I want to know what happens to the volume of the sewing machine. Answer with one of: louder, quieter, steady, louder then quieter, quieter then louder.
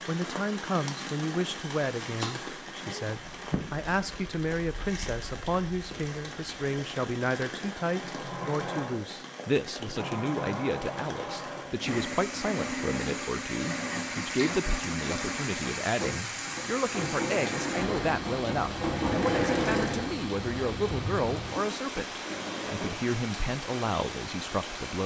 louder then quieter.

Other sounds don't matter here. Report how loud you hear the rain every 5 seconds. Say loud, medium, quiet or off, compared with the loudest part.
loud, medium, loud, loud, loud.